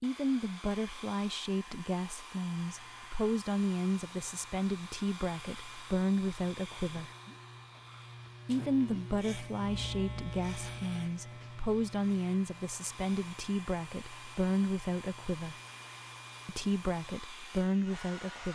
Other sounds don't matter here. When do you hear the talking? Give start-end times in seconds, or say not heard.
0.0-7.1, 8.4-15.6, 16.4-18.5.